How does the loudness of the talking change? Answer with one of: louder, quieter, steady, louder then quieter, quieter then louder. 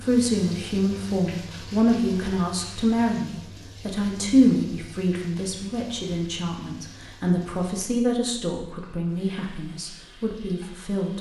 quieter.